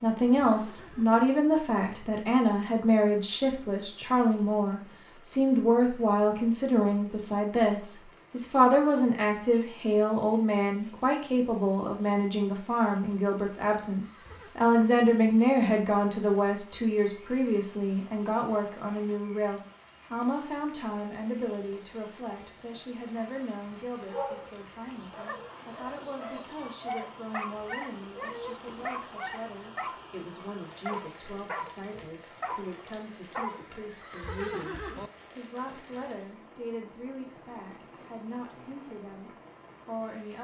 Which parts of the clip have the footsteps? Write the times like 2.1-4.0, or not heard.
not heard.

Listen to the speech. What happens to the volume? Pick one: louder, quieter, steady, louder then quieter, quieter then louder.
quieter.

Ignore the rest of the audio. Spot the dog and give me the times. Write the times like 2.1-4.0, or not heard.
24.1-33.7.